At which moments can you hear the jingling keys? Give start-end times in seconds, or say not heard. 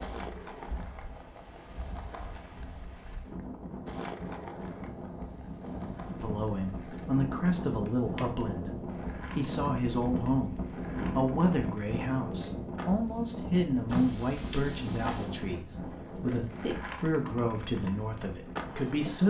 13.8-15.3.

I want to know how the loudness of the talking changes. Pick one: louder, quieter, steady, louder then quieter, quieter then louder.
steady.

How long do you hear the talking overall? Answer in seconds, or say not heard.
13 s.